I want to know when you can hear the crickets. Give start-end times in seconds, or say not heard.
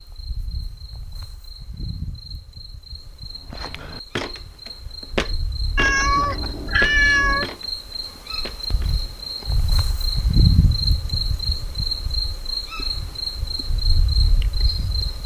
0.0-15.2.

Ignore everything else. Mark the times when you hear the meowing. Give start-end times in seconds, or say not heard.
5.8-7.5.